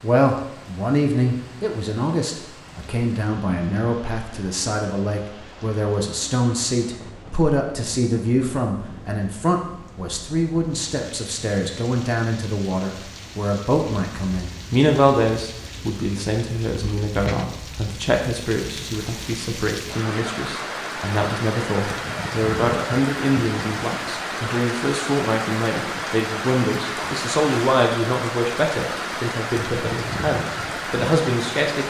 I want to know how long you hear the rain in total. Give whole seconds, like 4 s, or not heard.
32 s.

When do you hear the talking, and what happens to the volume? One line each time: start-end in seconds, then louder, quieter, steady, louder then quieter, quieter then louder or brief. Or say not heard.
0.0-31.8 steady.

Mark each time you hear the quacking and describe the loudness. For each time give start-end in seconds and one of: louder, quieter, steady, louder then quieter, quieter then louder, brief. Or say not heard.
not heard.